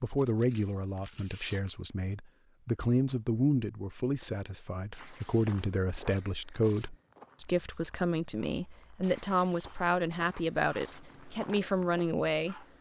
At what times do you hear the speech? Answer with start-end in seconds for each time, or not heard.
0.0-12.6.